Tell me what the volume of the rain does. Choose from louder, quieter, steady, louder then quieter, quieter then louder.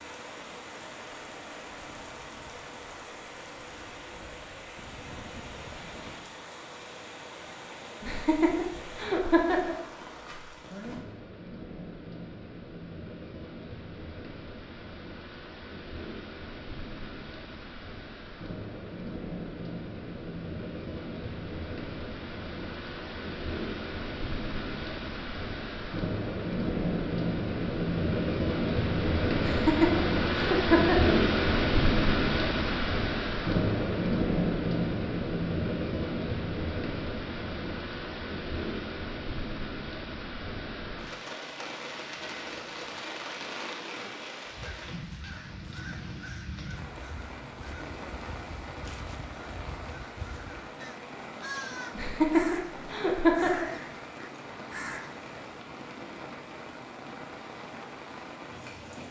louder then quieter.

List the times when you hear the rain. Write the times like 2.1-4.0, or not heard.
0.0-59.0.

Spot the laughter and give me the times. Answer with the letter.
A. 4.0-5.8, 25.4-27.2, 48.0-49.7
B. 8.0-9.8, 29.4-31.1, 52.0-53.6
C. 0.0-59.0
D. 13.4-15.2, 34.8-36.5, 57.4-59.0
B.